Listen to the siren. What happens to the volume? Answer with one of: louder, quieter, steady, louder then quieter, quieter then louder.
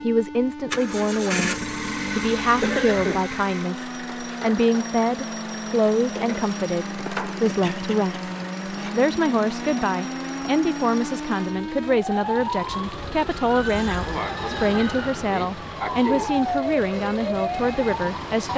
louder.